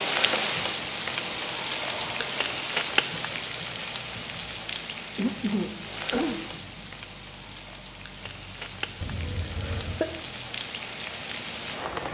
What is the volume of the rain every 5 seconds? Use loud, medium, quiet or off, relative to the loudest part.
loud, medium, medium.